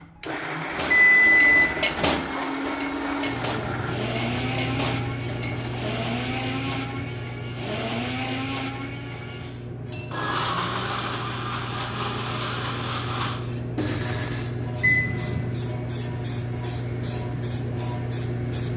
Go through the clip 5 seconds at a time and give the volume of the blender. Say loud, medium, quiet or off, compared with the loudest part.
loud, loud, loud, quiet.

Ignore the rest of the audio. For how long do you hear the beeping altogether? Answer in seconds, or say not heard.
2 s.